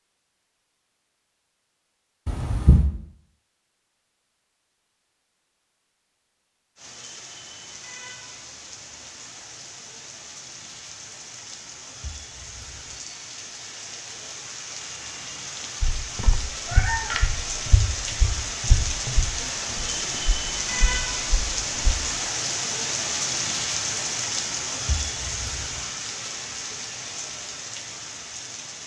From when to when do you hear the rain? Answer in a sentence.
The rain can be heard from 6.8 to 28.8 s.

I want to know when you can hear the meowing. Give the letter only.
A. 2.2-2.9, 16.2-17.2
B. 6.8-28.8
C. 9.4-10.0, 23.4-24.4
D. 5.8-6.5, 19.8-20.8
A.